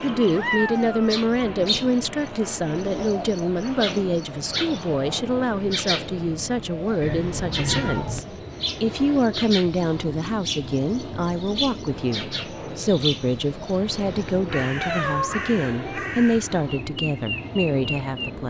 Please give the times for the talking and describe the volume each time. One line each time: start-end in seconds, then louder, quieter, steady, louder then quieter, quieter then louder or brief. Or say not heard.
0.0-18.4 steady.